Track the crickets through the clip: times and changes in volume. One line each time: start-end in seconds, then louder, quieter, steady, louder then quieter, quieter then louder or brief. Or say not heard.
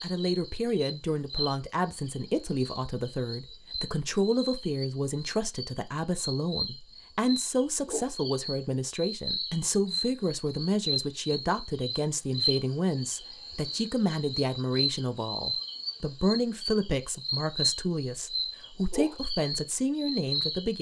0.0-20.7 louder.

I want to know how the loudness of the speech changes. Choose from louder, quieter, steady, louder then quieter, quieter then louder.
steady.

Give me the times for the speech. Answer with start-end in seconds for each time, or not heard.
0.0-20.7.